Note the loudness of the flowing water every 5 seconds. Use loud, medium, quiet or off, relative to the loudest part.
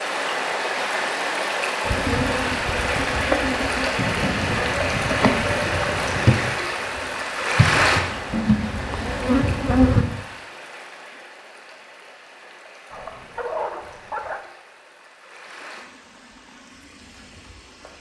loud, loud, quiet, quiet.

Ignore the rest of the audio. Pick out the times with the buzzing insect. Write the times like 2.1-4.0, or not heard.
1.9-10.1.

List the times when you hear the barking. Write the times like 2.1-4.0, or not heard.
4.0-6.5, 12.9-14.4.